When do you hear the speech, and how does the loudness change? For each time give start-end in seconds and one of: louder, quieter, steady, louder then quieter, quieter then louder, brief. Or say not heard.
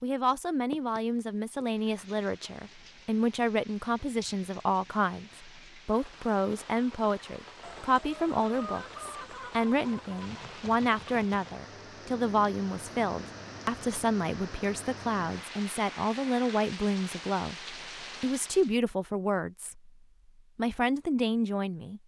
0.0-19.9 steady
20.6-22.0 brief.